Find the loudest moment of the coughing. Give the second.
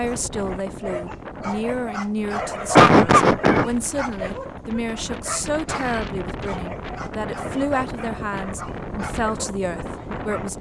3 s.